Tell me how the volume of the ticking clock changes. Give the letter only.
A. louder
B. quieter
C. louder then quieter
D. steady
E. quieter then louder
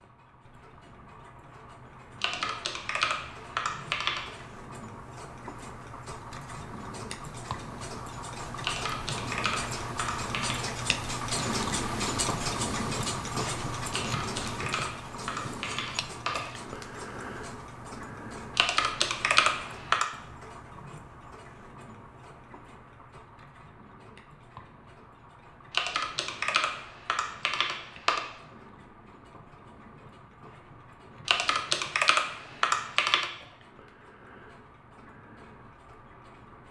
C.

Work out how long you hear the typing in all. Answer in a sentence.
The typing can be heard for 13 seconds in total.